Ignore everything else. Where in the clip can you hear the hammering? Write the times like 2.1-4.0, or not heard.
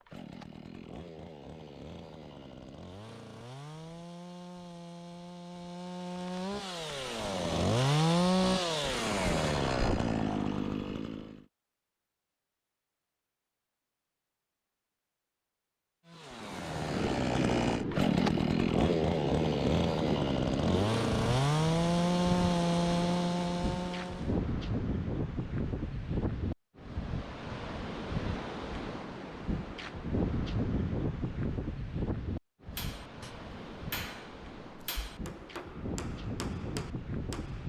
32.7-37.6.